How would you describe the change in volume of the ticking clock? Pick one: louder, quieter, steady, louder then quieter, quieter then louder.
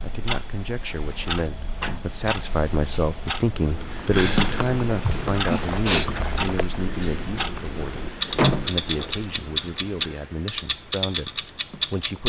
louder.